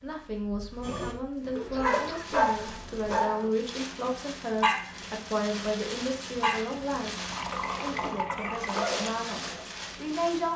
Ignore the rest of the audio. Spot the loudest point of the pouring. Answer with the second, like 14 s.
8 s.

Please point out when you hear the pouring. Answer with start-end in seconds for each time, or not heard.
2.2-3.2, 7.3-8.9.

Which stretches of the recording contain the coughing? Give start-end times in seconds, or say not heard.
1.7-2.2, 7.5-8.6.